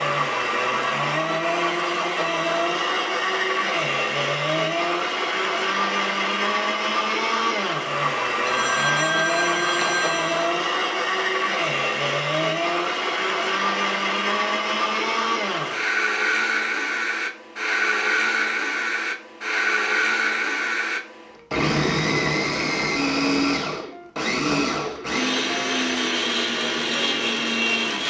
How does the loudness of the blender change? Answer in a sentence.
The loudness of the blender stays about the same.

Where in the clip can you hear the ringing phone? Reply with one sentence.
The ringing phone can be heard from 8.4 to 10.4 s.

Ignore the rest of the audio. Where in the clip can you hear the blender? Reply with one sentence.
You can hear the blender from 0.0 to 28.0 s.